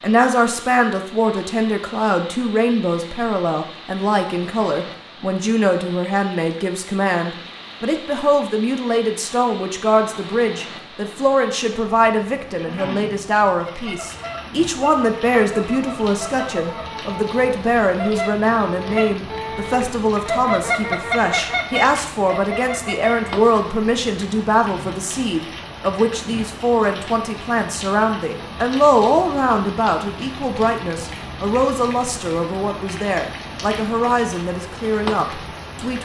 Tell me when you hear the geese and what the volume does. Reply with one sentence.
The geese can be heard from 13.7 to 23.3 s, getting louder.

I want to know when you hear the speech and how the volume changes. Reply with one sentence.
The speech can be heard from 0.0 to 36.0 s, at a steady volume.